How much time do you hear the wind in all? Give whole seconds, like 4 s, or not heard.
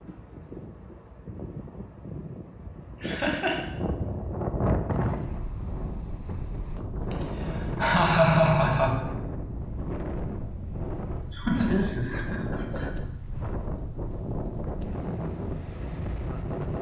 17 s.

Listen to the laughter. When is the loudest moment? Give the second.
8 s.